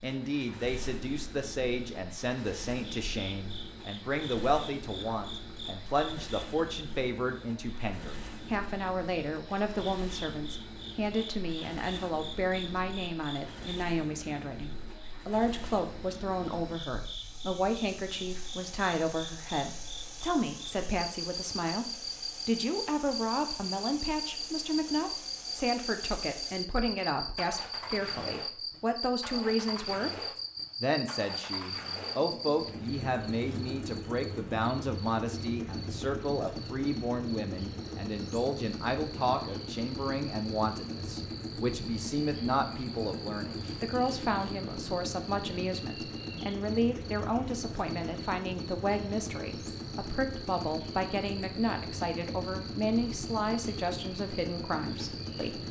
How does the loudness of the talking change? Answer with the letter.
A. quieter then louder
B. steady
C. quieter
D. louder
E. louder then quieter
B.